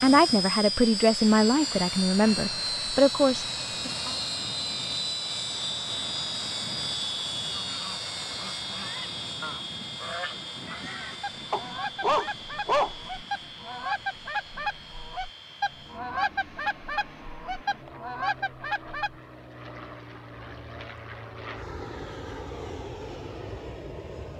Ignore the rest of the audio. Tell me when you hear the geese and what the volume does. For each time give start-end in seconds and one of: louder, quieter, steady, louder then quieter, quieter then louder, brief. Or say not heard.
7.5-19.2 louder.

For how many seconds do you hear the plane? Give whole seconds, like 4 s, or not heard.
24 s.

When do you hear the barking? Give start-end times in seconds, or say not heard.
11.5-12.9.